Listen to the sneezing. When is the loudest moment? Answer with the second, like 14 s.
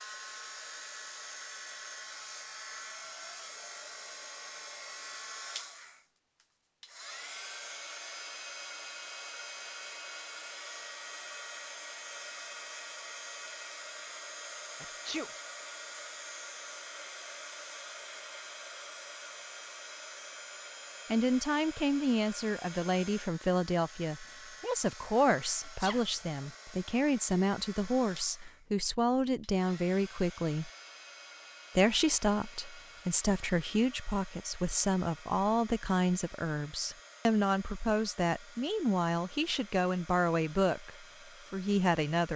15 s.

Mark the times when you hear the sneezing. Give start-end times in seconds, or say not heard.
14.8-15.3, 25.6-26.1.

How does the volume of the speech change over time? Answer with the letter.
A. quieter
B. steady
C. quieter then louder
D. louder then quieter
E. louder
B.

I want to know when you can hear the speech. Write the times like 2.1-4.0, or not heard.
21.1-30.7, 31.8-42.3.